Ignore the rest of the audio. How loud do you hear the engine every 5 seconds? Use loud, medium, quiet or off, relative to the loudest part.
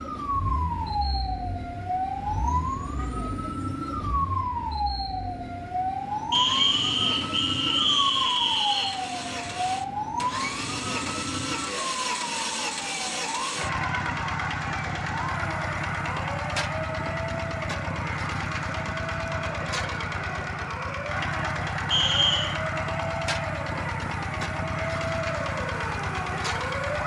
medium, medium, loud, loud, loud, loud.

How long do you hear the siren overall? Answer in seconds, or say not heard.
27 s.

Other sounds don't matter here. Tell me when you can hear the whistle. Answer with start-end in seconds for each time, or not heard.
6.3-8.9, 21.9-22.5.